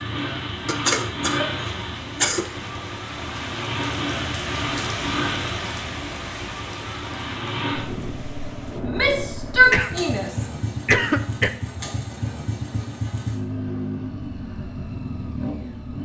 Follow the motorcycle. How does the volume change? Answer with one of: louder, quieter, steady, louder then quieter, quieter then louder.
steady.